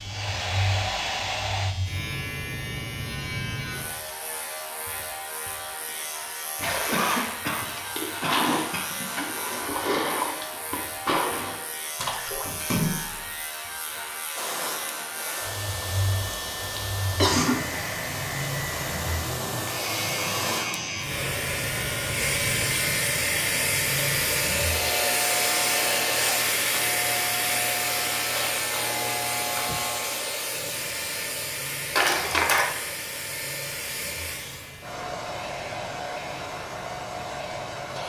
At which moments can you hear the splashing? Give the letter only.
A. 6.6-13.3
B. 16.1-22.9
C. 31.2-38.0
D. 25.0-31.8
A.